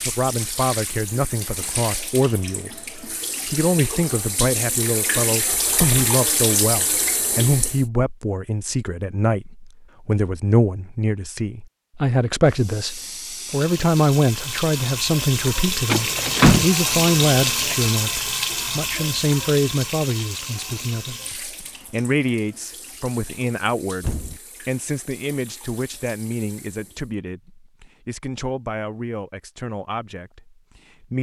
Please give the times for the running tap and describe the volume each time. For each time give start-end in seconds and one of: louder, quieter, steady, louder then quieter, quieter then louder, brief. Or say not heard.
0.0-7.8 louder
12.4-27.1 louder then quieter.